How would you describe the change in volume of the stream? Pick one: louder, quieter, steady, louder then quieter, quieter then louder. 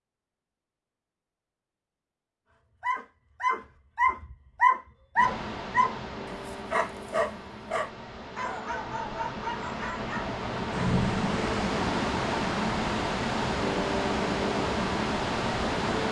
louder.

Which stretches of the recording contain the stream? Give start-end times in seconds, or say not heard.
5.2-16.0.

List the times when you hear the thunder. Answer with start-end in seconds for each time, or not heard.
10.7-11.6.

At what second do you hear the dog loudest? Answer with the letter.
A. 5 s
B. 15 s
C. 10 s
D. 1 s
A.